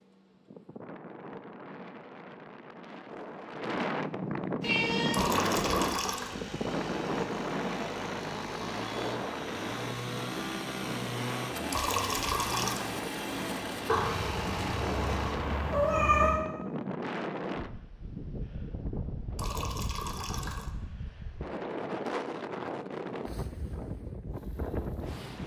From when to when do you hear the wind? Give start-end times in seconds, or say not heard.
0.0-25.4.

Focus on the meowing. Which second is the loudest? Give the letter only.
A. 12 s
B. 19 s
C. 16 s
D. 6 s
C.